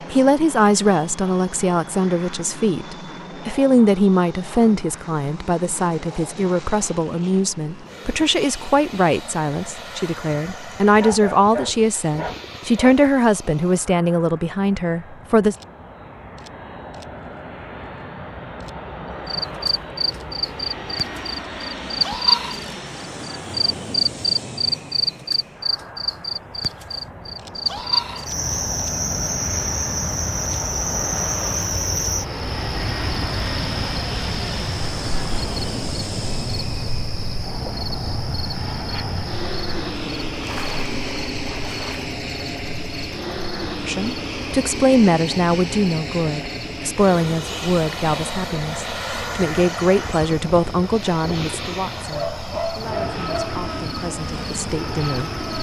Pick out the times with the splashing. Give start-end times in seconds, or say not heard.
40.4-42.0.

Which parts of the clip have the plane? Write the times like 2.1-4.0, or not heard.
0.0-55.5.